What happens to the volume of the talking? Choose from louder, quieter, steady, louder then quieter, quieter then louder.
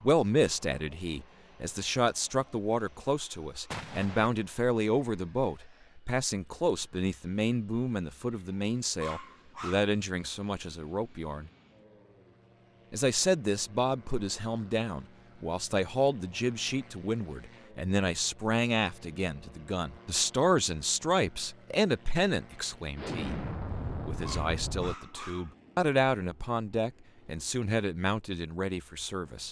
steady.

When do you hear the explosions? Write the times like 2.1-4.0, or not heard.
3.7-4.3, 22.9-24.9.